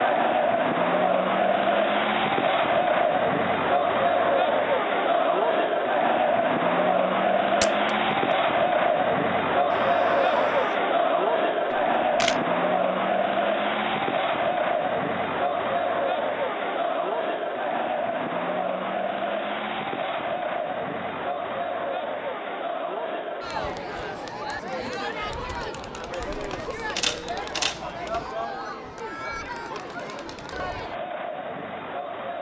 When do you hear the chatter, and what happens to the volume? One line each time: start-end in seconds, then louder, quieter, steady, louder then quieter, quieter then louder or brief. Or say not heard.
0.0-32.3 quieter.